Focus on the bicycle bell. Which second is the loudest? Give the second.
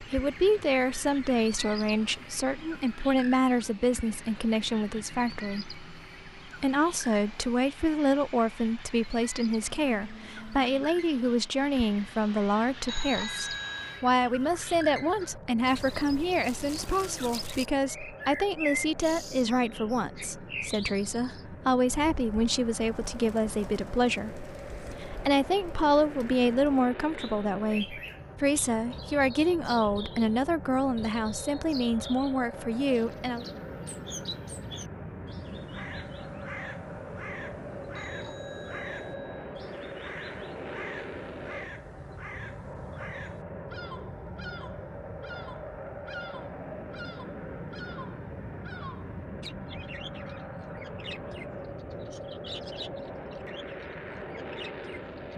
13 s.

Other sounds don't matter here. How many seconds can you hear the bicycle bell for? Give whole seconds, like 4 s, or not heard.
3 s.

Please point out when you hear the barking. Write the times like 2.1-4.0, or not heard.
not heard.